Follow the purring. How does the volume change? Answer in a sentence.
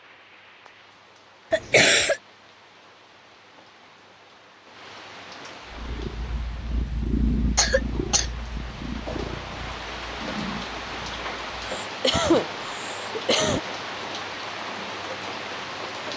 The loudness of the purring goes up, then down.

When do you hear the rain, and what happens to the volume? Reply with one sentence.
The rain can be heard from 0.0 to 16.1 s, getting louder.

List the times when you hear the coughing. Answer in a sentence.
The coughing can be heard from 1.5 to 2.2 s, from 7.5 to 8.3 s and from 11.6 to 13.6 s.